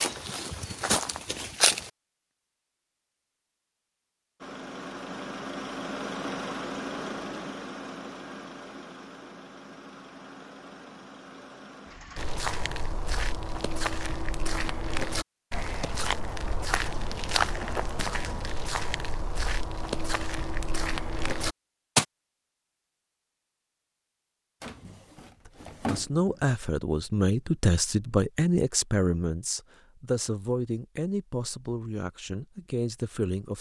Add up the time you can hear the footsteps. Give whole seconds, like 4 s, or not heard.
12 s.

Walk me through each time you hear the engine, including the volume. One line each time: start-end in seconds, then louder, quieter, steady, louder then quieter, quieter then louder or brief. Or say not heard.
4.4-12.3 quieter.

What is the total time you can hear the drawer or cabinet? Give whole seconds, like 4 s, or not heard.
4 s.